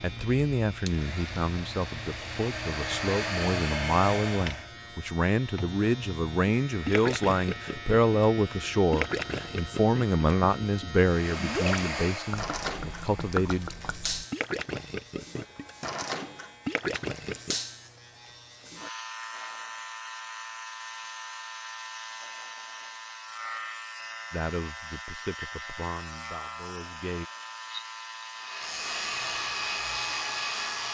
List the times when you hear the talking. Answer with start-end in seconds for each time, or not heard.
0.0-13.7, 24.3-27.2.